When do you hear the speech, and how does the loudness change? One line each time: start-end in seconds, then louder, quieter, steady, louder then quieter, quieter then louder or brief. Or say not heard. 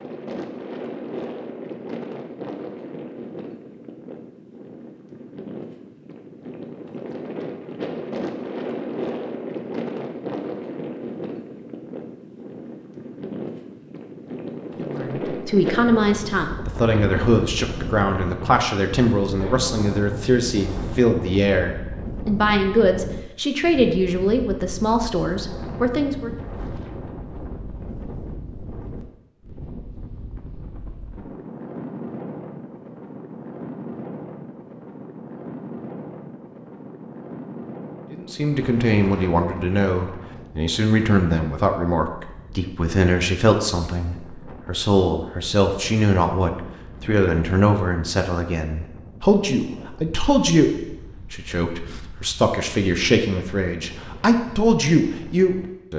14.8-26.4 steady
38.1-55.9 steady.